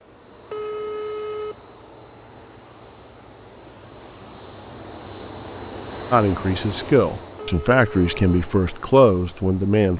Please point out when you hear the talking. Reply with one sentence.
You can hear the talking from 6.1 to 9.9 s.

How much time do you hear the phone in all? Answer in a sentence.
You can hear the phone for 2 seconds altogether.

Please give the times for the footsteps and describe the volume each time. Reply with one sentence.
You can't hear the footsteps here.